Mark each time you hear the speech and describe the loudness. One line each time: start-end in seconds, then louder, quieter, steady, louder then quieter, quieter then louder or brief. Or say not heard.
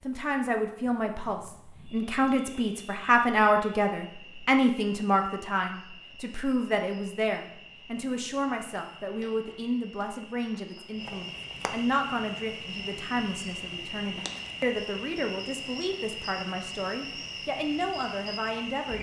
0.0-18.9 quieter.